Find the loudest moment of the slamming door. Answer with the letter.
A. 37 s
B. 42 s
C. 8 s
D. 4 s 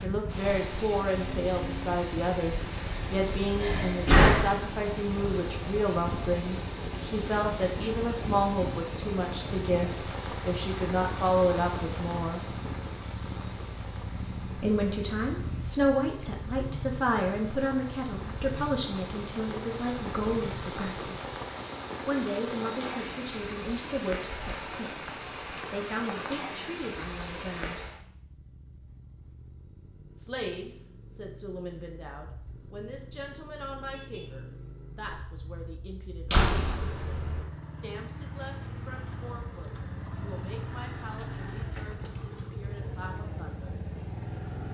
D.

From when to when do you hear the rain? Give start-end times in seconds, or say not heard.
0.0-28.0.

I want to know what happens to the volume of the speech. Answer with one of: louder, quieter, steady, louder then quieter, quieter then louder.
quieter.